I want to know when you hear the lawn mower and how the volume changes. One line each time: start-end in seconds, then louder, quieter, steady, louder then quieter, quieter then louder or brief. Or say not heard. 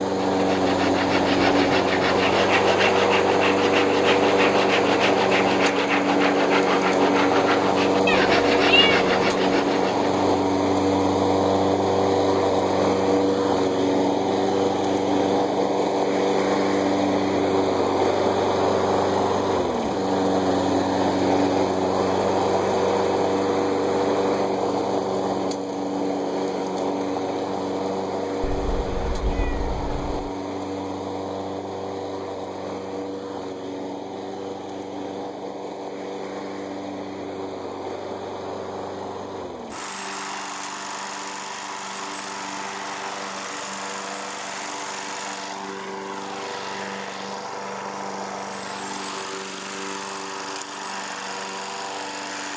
0.0-52.5 quieter.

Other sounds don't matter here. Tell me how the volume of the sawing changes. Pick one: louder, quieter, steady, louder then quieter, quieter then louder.
steady.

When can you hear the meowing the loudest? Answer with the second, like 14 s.
9 s.